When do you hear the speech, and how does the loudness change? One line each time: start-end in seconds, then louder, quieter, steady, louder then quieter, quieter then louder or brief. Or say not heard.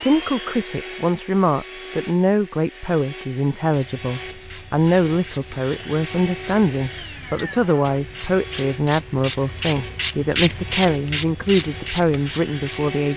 0.0-13.1 steady.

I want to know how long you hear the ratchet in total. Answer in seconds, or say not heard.
9 s.